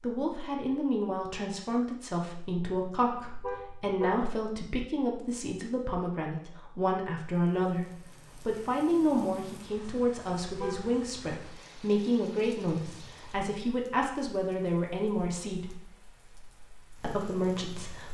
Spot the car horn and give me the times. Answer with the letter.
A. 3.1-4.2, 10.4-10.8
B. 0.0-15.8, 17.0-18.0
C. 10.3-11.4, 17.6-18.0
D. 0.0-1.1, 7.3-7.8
A.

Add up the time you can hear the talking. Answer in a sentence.
You can hear the talking for 17 seconds altogether.